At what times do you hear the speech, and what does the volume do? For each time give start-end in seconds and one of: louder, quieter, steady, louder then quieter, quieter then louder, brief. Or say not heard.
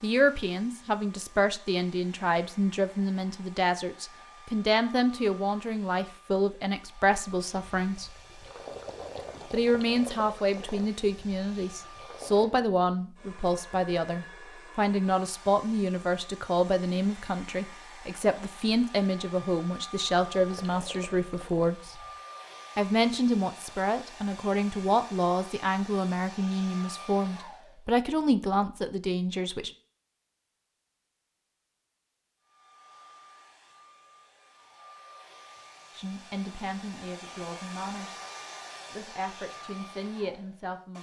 0.0-8.1 steady
9.5-21.9 steady
22.8-29.7 steady
36.0-38.2 brief
38.9-40.9 brief.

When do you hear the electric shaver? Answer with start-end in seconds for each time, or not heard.
not heard.